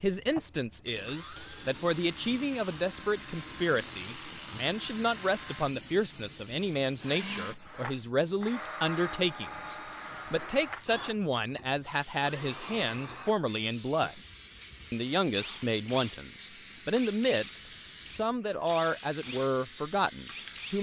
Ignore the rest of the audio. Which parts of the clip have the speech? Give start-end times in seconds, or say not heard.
0.0-14.2, 14.9-20.7.